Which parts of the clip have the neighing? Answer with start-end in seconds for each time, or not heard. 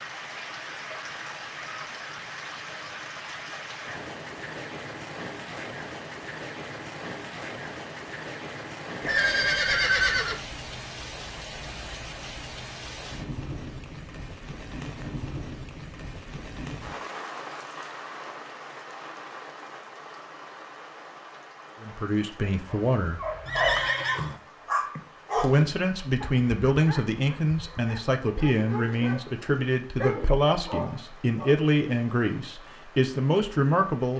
9.0-10.4, 23.4-24.4.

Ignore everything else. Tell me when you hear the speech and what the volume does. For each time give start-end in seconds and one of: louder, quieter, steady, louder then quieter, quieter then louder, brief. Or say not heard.
21.8-23.2 brief
25.4-34.1 steady.